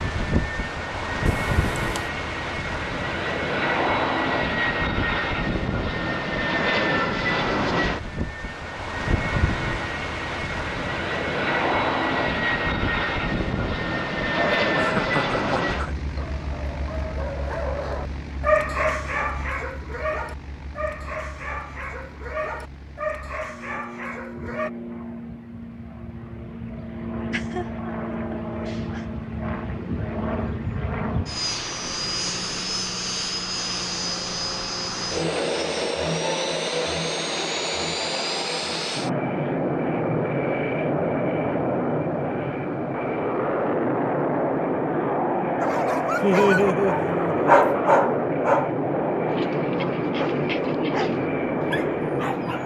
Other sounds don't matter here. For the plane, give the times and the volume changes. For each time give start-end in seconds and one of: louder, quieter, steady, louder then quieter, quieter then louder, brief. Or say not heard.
0.0-52.6 quieter then louder.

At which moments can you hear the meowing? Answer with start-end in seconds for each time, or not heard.
1.2-2.1.